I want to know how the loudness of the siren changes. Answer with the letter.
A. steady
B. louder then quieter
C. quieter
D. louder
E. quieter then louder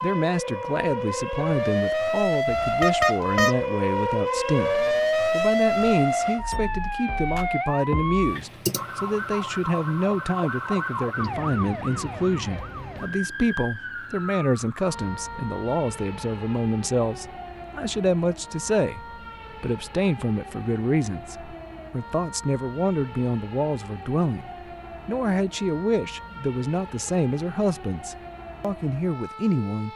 C.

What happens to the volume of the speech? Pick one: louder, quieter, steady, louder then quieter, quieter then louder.
steady.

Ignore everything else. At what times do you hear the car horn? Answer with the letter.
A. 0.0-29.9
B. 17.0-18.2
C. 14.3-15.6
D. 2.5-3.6
D.